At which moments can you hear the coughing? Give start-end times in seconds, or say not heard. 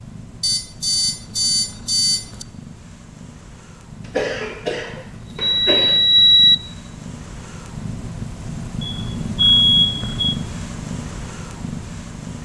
4.0-6.0.